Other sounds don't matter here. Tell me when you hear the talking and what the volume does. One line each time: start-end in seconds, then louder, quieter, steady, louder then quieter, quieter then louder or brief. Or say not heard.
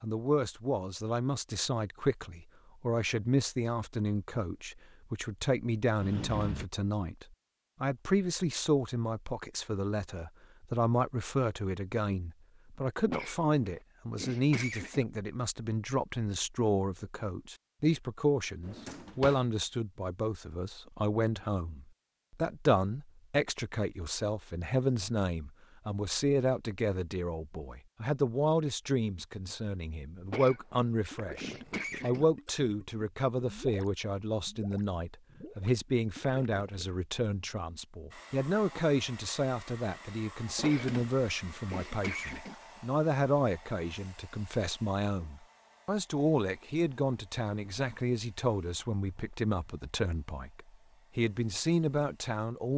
0.0-52.7 steady.